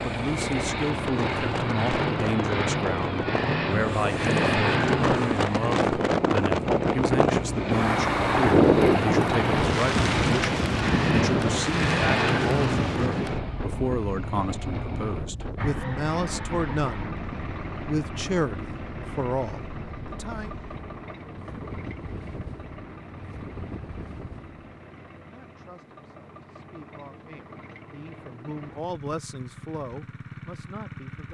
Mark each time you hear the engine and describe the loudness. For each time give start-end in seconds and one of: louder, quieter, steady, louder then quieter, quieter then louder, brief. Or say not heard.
0.0-31.2 quieter.